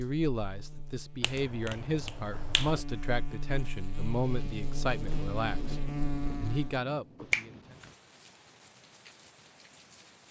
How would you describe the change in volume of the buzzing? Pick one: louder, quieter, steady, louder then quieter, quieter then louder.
louder.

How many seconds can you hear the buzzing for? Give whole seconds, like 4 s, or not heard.
7 s.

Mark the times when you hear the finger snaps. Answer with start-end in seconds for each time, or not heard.
1.2-2.8, 7.2-7.9.